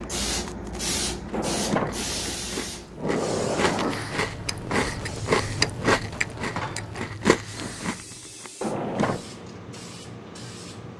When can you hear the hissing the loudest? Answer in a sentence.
The loudest moment of the hissing is at 1 second.